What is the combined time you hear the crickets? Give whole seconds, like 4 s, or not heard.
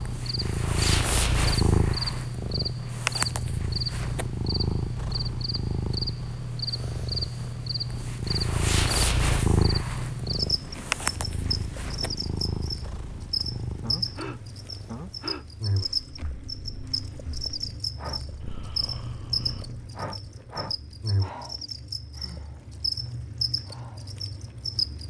25 s.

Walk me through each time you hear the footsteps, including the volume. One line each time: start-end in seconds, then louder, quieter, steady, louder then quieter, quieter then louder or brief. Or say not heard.
not heard.